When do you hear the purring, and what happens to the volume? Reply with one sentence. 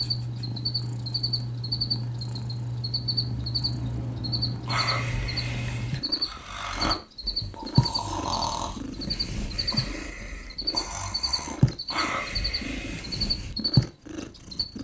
The purring can be heard from 0.0 to 14.8 s, getting quieter then louder.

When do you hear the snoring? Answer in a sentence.
The snoring can be heard from 4.7 to 13.1 s.